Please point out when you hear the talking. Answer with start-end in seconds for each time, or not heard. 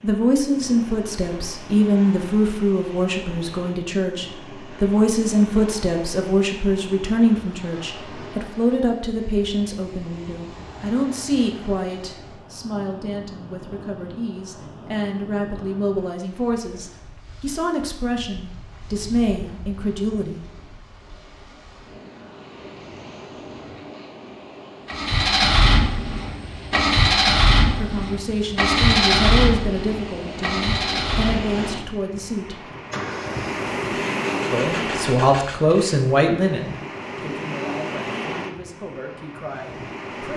0.0-20.4, 27.8-32.8, 34.4-40.3.